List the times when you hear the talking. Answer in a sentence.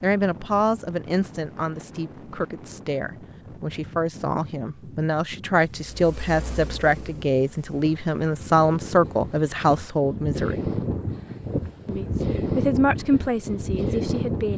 The talking can be heard from 0.0 to 10.6 s and from 11.8 to 14.5 s.